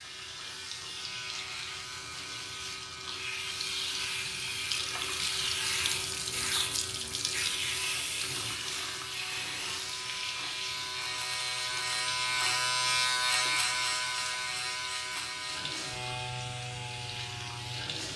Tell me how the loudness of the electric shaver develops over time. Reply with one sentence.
The volume of the electric shaver goes up, then down.